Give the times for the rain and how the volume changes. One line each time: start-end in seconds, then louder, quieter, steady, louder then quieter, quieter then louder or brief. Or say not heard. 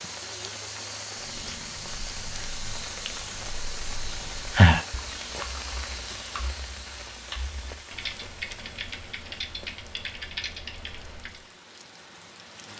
0.0-12.7 quieter.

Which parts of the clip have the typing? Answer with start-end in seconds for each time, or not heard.
1.1-11.4.